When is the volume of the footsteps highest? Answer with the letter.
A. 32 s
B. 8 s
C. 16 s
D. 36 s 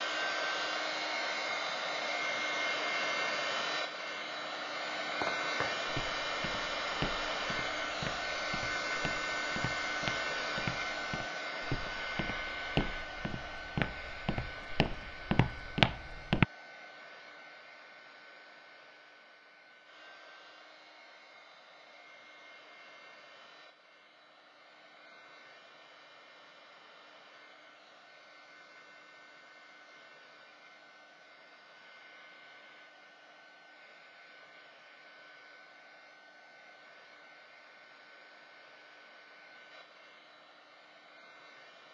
C.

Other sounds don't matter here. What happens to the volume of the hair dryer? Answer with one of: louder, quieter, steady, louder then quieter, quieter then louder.
quieter.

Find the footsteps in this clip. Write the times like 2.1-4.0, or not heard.
5.0-16.4.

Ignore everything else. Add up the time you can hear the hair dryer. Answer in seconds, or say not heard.
42 s.